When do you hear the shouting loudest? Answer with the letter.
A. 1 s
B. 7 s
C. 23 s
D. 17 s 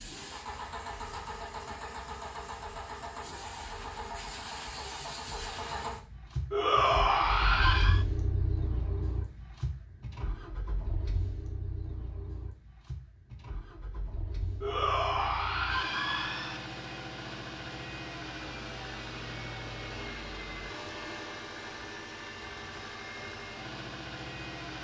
B.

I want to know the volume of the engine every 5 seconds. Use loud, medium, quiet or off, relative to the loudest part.
loud, loud, medium, loud, loud.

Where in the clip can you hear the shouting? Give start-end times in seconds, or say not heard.
6.5-8.1, 14.6-16.6.